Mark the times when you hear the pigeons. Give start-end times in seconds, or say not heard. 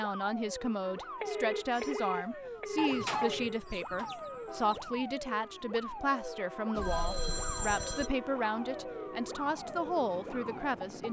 2.8-4.8.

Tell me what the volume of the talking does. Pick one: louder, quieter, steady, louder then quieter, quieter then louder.
steady.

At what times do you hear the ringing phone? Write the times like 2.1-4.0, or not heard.
1.2-3.6, 6.7-8.1.